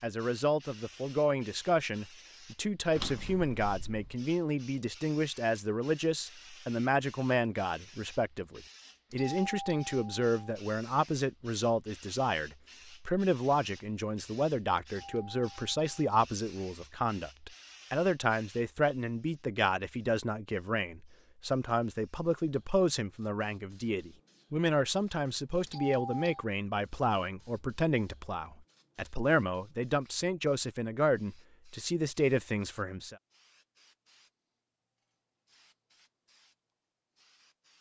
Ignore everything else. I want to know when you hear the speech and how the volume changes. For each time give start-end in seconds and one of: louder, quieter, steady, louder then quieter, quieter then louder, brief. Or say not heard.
0.0-33.1 steady.